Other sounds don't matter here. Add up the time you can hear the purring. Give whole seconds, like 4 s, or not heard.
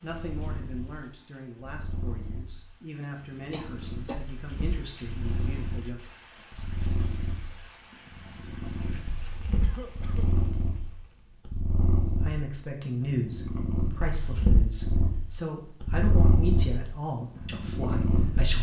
18 s.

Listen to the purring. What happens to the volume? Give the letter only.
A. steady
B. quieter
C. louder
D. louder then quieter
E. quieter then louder
C.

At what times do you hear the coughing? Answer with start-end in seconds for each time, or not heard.
3.5-4.2, 9.6-10.3.